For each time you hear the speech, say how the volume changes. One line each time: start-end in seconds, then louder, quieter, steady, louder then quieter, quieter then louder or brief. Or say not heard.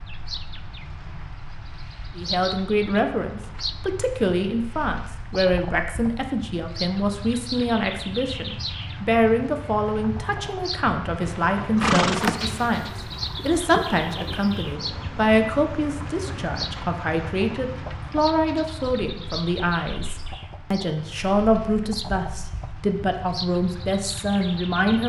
2.1-25.0 steady.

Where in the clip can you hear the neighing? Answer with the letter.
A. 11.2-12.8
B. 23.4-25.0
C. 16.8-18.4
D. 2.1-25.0
A.